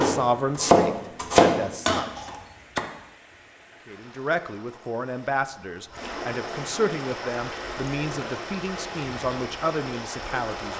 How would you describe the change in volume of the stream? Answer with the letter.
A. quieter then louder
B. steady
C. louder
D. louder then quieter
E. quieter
C.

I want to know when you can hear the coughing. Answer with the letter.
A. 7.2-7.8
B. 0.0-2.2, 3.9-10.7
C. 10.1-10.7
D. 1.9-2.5
D.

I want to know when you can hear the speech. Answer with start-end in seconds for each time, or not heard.
0.0-2.2, 3.9-10.7.